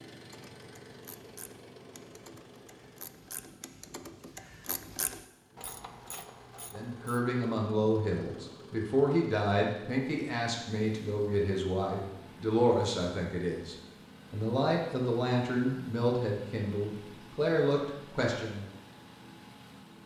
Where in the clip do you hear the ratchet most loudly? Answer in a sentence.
The loudest moment of the ratchet is at 5 seconds.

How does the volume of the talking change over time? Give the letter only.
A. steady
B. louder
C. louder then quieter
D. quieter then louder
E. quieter
A.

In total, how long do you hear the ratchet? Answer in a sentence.
You can hear the ratchet for 7 seconds altogether.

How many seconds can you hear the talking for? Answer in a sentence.
The talking can be heard for 12 seconds in total.